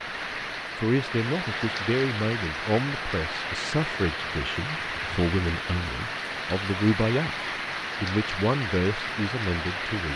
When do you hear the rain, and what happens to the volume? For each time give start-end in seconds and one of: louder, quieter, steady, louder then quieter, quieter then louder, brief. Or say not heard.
0.0-10.1 steady.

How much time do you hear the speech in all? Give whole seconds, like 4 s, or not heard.
9 s.